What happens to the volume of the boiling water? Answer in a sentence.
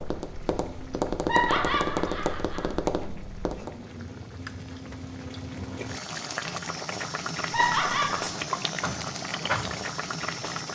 The volume of the boiling water goes up.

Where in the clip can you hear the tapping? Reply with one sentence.
The tapping can be heard from 0.0 to 3.8 s.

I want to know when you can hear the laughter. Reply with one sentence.
You can hear the laughter from 1.2 to 2.6 s and from 7.5 to 8.2 s.